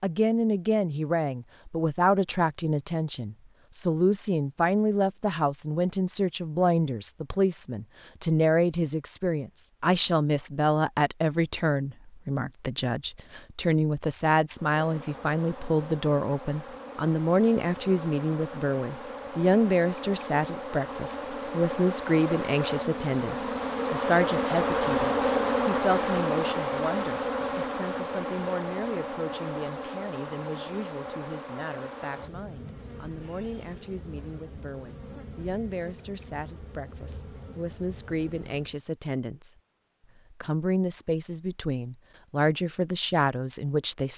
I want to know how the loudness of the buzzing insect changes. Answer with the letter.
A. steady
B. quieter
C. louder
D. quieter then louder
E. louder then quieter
E.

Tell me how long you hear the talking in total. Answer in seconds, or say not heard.
43 s.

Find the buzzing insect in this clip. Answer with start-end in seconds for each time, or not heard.
14.5-38.8.